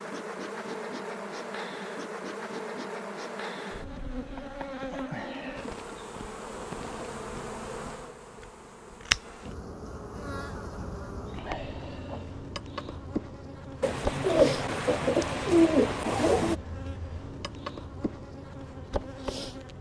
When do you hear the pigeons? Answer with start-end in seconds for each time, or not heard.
13.8-16.6.